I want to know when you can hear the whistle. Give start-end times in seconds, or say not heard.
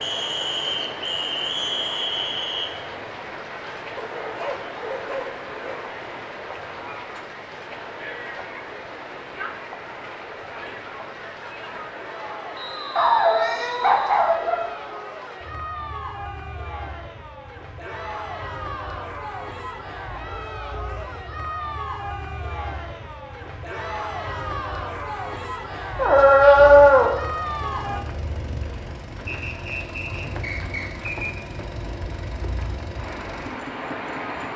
0.0-2.7, 12.5-14.4, 29.2-31.3.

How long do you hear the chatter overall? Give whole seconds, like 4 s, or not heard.
28 s.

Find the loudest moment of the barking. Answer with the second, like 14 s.
27 s.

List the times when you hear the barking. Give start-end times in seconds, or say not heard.
4.0-5.8, 12.9-15.0, 25.9-27.1.